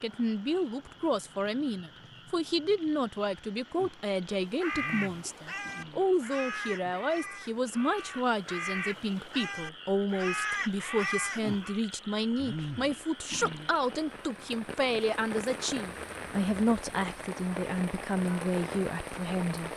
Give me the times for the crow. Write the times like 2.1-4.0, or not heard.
4.3-11.8.